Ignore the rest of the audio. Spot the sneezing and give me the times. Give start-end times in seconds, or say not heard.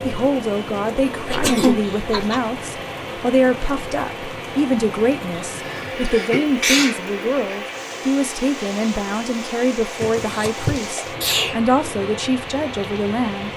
1.2-2.4, 5.5-7.0, 10.0-11.6.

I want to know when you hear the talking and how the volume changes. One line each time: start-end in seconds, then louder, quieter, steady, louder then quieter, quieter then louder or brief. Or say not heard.
0.0-13.5 steady.